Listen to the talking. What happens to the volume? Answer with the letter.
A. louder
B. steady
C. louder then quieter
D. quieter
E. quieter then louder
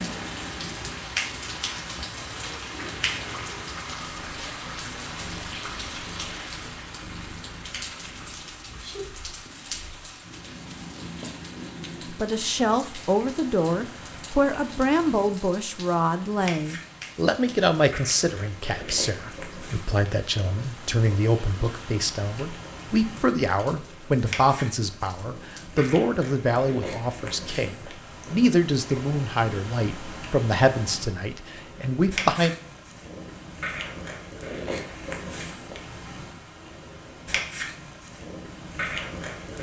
B.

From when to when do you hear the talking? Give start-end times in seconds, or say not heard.
12.1-32.5.